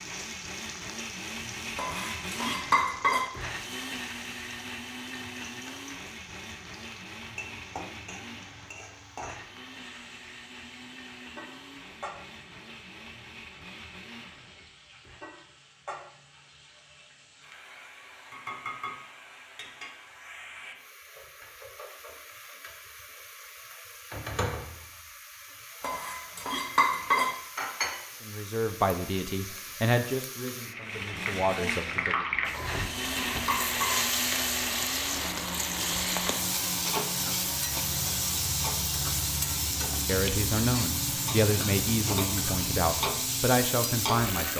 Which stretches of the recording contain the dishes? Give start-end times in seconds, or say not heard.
1.8-3.3, 25.8-27.4, 32.5-34.0.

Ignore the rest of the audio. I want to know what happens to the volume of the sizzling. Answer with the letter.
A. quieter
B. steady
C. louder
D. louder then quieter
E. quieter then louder
C.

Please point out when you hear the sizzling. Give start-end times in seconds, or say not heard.
0.0-44.5.